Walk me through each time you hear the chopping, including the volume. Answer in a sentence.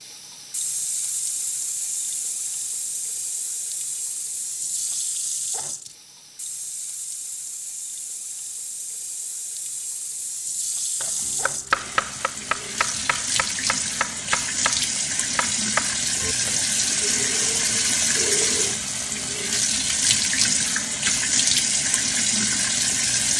You can hear the chopping from 11.0 to 16.6 s, getting quieter then louder.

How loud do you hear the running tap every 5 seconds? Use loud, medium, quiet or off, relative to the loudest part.
medium, quiet, medium, loud, loud.